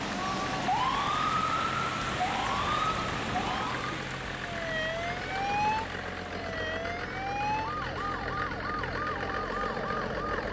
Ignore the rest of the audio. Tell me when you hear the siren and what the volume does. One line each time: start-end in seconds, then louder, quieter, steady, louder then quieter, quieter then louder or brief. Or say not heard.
0.0-10.4 quieter.